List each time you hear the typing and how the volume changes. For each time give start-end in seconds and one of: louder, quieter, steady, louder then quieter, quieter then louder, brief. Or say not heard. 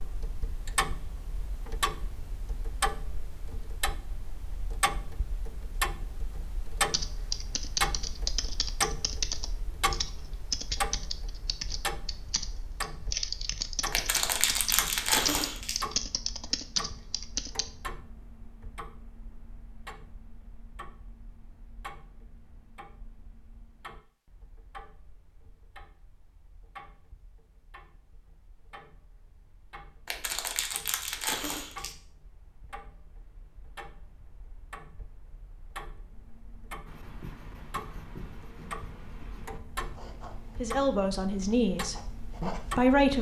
6.9-17.6 steady.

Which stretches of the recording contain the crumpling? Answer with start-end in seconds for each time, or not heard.
13.9-15.8, 30.1-31.9.